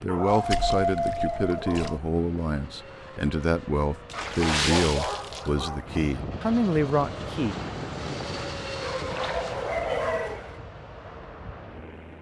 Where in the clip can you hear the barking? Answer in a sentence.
You can hear the barking from 0.1 to 2.0 s, from 4.1 to 6.0 s and from 8.8 to 10.6 s.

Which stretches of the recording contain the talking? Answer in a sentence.
The talking can be heard from 0.0 to 7.5 s.